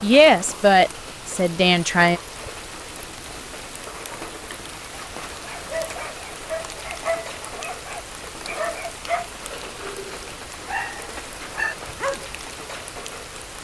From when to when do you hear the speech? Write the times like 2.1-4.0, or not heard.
0.0-2.2.